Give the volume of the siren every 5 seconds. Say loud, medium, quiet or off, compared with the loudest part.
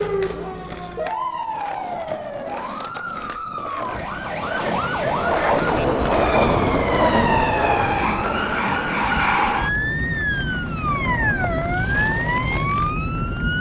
medium, loud, loud.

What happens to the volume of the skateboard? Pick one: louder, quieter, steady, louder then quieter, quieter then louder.
louder then quieter.